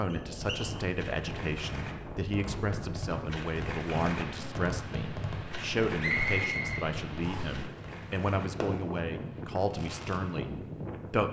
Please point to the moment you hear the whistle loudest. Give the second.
6 s.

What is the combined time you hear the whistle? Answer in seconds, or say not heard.
2 s.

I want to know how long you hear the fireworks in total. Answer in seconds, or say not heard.
10 s.